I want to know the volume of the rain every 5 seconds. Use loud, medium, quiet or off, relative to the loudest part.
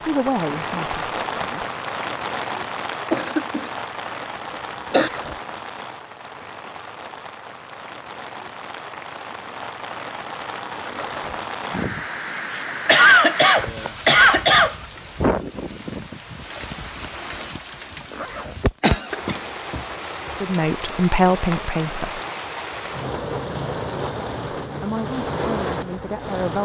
loud, medium, loud, loud, loud, loud.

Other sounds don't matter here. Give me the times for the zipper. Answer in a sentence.
The zipper can be heard from 4.9 to 5.4 s, from 10.9 to 11.4 s and from 18.1 to 18.6 s.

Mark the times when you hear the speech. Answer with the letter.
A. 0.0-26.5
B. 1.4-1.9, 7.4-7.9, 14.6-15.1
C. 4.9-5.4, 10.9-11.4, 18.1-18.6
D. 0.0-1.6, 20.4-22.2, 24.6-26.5
D.